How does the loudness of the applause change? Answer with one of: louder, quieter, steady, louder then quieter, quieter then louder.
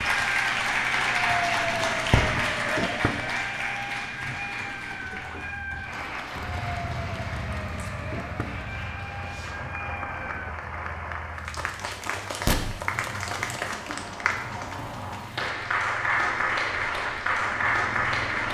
quieter then louder.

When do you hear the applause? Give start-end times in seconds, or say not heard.
0.0-18.4.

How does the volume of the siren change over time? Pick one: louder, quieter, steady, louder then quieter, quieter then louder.
quieter.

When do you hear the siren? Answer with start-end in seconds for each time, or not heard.
0.0-10.6.